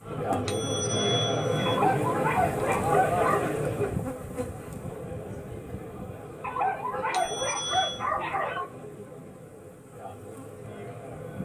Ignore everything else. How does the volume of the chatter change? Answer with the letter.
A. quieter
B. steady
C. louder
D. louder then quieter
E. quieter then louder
A.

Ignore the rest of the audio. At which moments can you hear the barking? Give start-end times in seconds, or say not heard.
1.6-3.4, 6.4-8.7.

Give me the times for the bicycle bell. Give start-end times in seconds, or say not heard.
0.5-1.8, 7.1-8.1.